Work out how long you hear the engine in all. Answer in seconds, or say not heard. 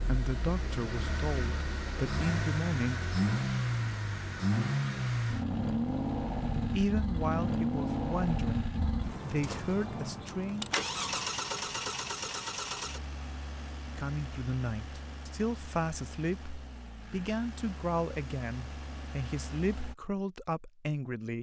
20 s.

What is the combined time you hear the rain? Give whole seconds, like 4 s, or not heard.
not heard.